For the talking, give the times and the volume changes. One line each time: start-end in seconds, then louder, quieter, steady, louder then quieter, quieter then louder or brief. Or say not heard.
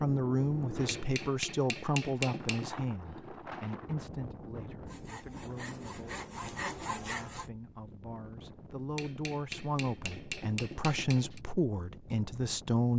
0.0-12.9 quieter then louder.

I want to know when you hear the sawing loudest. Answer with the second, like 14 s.
7 s.